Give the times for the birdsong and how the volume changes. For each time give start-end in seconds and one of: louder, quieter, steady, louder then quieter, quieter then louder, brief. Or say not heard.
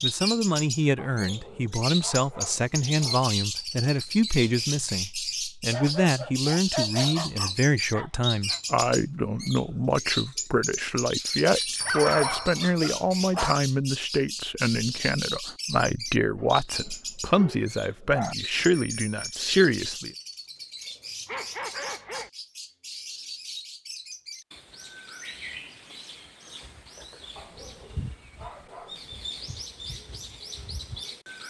0.0-31.4 quieter.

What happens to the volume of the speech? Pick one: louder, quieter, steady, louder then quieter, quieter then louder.
steady.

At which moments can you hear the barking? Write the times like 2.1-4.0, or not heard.
0.9-3.2, 5.7-8.6, 11.8-13.6, 16.4-18.4, 21.2-22.3, 27.4-29.2.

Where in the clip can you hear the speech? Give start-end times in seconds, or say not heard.
0.0-20.1.